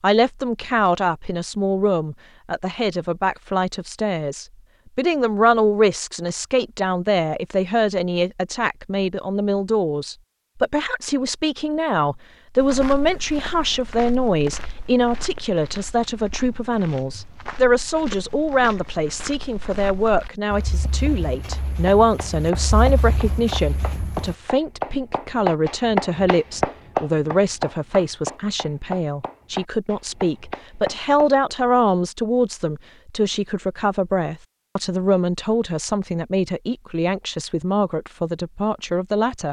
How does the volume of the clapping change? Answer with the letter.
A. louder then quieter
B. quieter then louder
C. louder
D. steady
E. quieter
A.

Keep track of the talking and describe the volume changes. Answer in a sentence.
The loudness of the talking stays about the same.